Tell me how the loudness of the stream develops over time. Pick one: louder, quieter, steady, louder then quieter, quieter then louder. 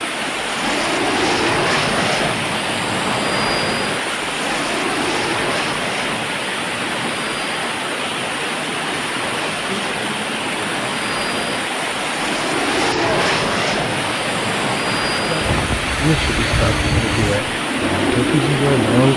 steady.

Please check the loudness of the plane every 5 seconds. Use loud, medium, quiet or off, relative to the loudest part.
loud, medium, loud, loud.